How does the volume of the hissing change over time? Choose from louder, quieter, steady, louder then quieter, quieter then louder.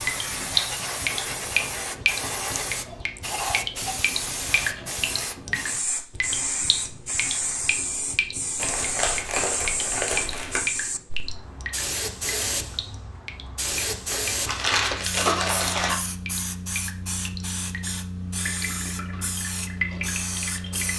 steady.